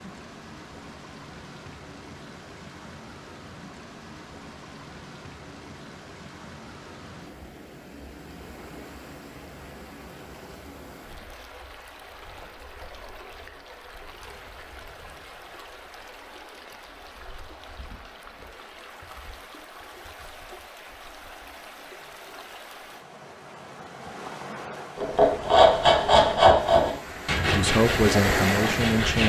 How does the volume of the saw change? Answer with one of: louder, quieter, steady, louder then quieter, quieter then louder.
quieter.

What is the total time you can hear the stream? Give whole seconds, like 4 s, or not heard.
29 s.